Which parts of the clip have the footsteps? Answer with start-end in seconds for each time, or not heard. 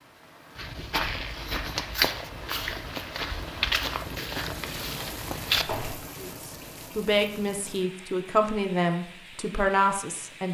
0.6-6.0.